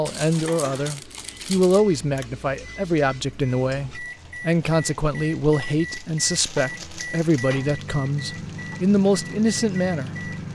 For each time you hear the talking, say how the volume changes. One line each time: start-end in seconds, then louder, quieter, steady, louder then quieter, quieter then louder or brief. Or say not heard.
0.0-10.3 steady.